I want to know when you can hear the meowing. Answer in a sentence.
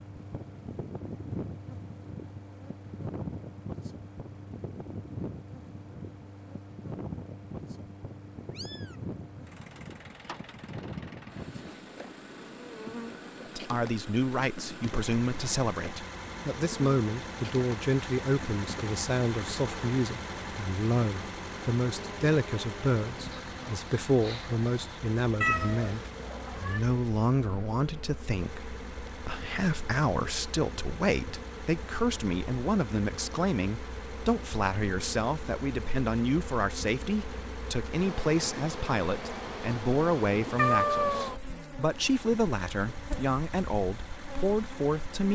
You can hear the meowing from 8.5 to 9.0 s, from 25.4 to 26.8 s and from 40.5 to 41.4 s.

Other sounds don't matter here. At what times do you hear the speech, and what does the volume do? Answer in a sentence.
You can hear the speech from 13.6 to 45.3 s, at a steady volume.